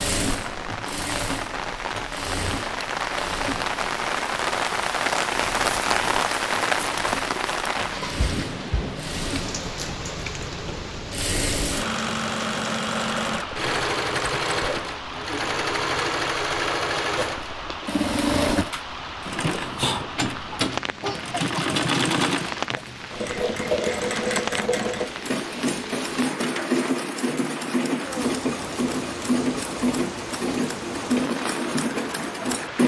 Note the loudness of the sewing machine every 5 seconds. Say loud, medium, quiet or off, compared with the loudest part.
medium, medium, loud, loud, loud, loud, loud.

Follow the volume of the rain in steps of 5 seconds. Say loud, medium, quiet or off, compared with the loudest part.
loud, loud, medium, medium, medium, medium, medium.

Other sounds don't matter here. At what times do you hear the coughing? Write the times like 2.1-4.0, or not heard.
21.0-21.8.